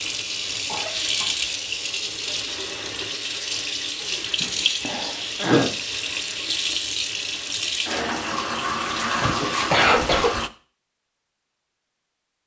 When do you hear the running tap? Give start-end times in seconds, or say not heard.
0.0-10.5.